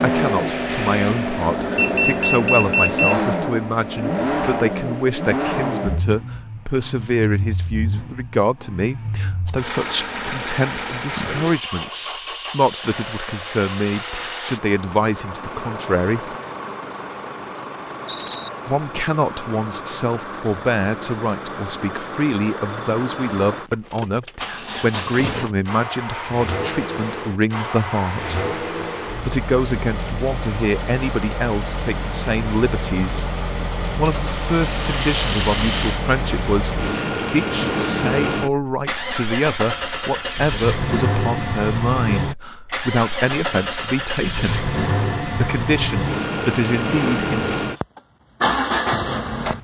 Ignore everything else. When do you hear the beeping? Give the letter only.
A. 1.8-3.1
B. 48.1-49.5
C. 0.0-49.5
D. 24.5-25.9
A.